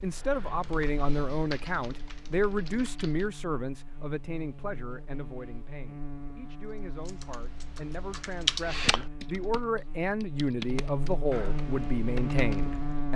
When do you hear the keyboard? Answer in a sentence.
You can hear the keyboard from 0.0 to 3.2 s and from 7.0 to 13.1 s.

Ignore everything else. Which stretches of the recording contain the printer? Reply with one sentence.
The printer can't be heard in this clip.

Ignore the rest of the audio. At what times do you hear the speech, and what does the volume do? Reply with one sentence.
You can hear the speech from 0.0 to 13.1 s, getting quieter then louder.